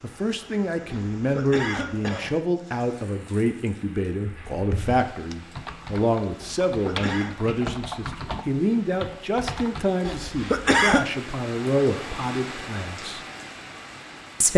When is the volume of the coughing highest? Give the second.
11 s.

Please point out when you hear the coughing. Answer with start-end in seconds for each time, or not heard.
0.9-2.4, 6.4-7.3, 10.1-11.1.